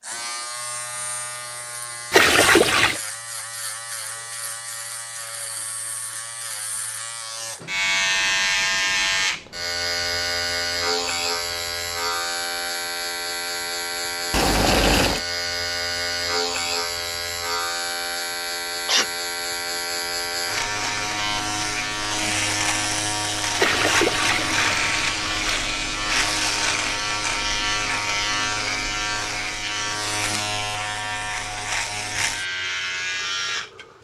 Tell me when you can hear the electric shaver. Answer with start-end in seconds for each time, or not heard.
0.0-33.9.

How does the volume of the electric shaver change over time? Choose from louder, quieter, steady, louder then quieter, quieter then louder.
louder.